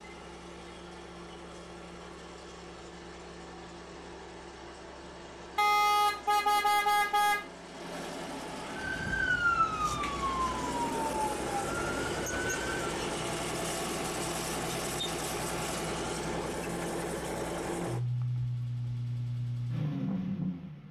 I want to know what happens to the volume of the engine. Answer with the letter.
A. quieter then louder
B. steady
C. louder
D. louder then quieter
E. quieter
C.